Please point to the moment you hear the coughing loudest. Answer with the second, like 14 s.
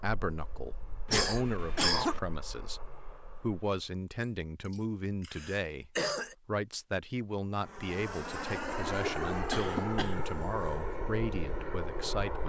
2 s.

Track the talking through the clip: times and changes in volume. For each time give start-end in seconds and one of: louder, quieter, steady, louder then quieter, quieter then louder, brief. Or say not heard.
0.0-12.4 steady.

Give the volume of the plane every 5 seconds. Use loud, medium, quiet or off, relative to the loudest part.
quiet, loud, loud.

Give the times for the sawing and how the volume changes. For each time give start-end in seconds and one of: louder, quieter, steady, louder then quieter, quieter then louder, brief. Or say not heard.
not heard.